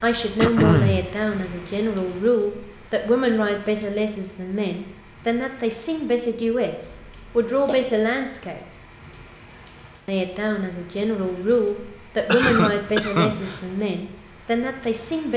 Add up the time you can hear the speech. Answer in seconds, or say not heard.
14 s.